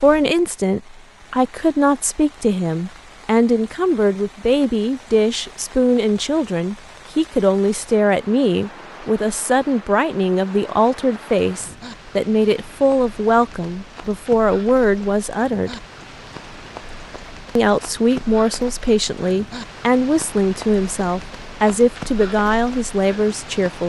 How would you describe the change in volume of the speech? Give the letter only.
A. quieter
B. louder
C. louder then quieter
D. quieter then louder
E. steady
E.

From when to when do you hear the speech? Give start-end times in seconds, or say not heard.
0.0-15.8, 17.6-23.8.